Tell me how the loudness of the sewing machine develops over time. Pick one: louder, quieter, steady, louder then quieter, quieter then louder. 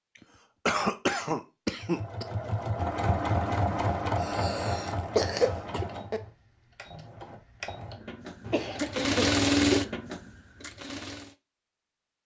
quieter then louder.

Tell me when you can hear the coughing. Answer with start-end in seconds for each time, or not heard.
0.7-2.2, 4.2-6.2, 8.4-9.8.